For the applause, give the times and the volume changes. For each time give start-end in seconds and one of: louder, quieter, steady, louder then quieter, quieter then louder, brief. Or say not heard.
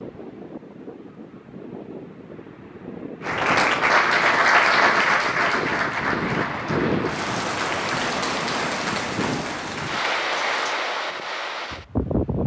3.2-10.8 quieter.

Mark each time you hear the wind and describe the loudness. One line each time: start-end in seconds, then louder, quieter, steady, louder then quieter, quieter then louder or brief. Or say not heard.
0.0-12.4 louder.